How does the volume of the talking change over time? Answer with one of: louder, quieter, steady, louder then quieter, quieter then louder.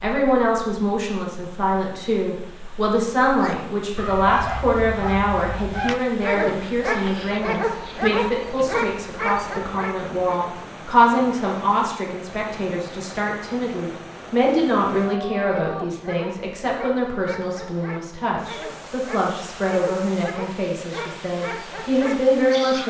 steady.